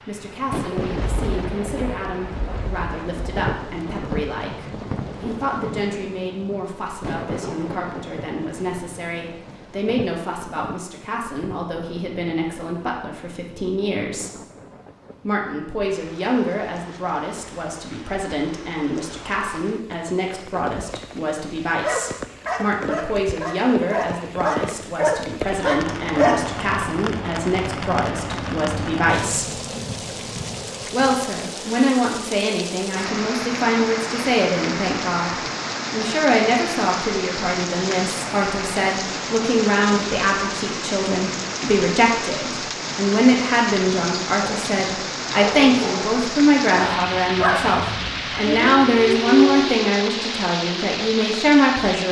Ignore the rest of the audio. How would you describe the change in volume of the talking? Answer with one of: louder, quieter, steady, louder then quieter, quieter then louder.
louder.